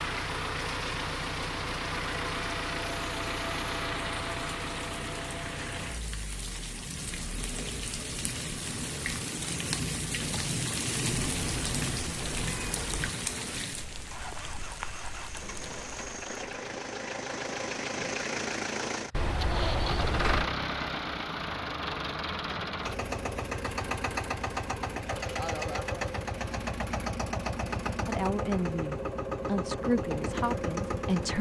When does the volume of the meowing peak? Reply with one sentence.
The loudest moment of the meowing is at 20 seconds.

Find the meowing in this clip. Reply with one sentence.
You can hear the meowing from 11.1 to 13.1 s and from 19.1 to 20.5 s.